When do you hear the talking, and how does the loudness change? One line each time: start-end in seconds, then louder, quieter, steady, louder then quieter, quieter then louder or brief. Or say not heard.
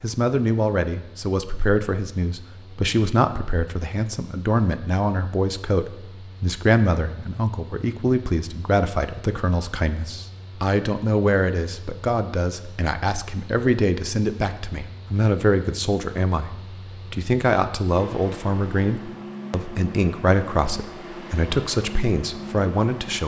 0.0-23.2 steady.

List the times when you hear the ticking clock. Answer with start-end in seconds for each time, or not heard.
not heard.